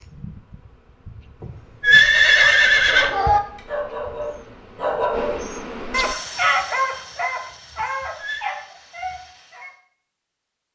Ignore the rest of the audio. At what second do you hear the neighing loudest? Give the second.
2 s.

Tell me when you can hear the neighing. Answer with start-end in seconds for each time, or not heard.
1.8-3.4, 8.2-8.6.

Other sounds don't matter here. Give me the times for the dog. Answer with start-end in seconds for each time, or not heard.
1.8-9.7.